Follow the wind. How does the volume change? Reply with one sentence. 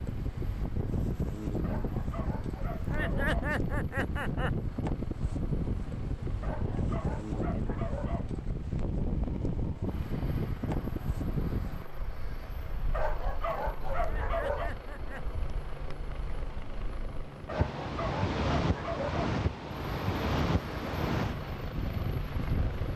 The volume of the wind goes down, then up.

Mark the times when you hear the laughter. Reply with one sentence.
The laughter can be heard from 2.7 to 4.5 s and from 13.9 to 15.3 s.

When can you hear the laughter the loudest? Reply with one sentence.
The loudest moment of the laughter is at 3 seconds.